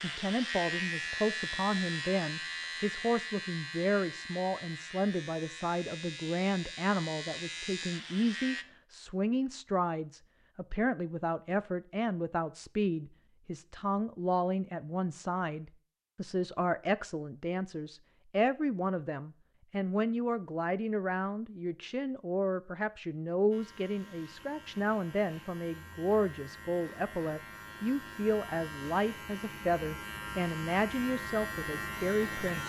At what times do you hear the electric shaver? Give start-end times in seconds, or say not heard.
0.0-8.7, 23.5-32.6.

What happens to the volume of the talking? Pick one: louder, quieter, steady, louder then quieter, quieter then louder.
steady.